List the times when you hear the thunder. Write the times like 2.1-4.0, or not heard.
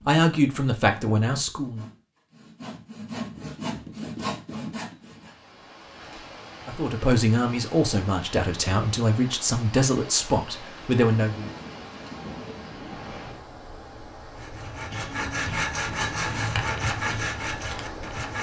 11.2-13.2.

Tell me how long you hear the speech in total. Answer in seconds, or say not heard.
7 s.